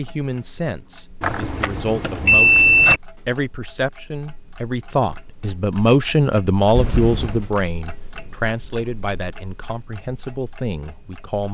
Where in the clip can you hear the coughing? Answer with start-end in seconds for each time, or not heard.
not heard.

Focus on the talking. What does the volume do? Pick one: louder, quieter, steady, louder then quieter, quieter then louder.
louder then quieter.